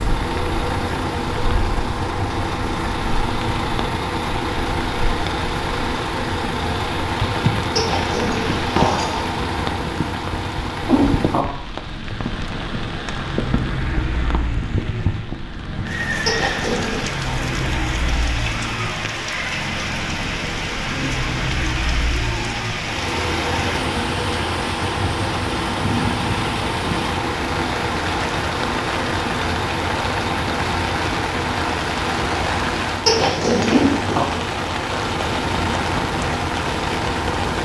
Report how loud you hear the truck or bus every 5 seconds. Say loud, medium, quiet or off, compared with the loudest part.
loud, loud, loud, medium, loud, loud, loud, loud.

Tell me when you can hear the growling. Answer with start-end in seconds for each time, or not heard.
7.8-9.2, 16.2-17.2, 33.0-33.9.